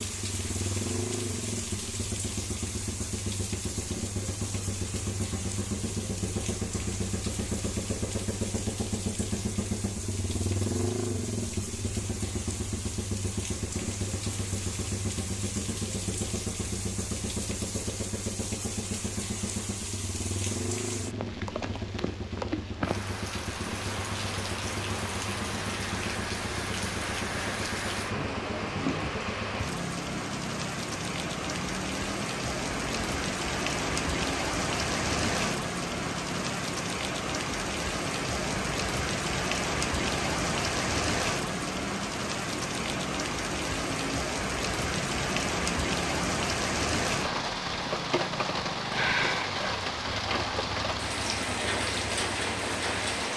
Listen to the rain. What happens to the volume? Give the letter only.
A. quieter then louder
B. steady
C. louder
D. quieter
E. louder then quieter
C.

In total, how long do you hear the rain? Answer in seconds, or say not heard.
53 s.